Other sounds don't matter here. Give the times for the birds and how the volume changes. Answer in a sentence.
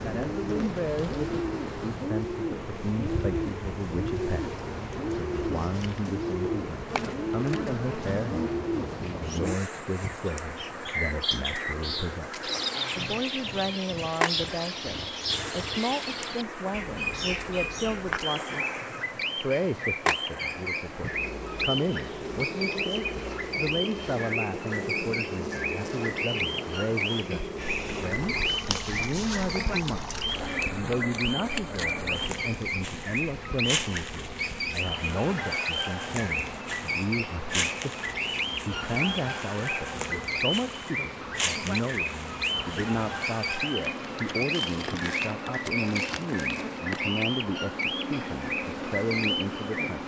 You can hear the birds from 0.0 to 50.0 s, at a steady volume.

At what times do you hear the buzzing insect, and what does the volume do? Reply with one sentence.
You can hear the buzzing insect from 0.0 to 50.0 s, at a steady volume.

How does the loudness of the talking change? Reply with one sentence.
The volume of the talking stays about the same.